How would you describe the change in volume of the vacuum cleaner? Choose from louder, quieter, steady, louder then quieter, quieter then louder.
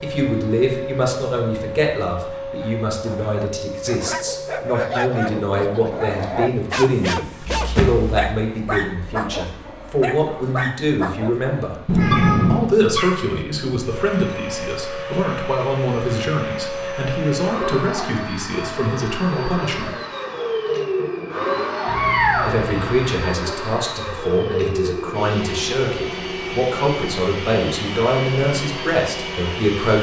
quieter then louder.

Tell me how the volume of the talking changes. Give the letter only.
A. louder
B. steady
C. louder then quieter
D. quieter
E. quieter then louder
B.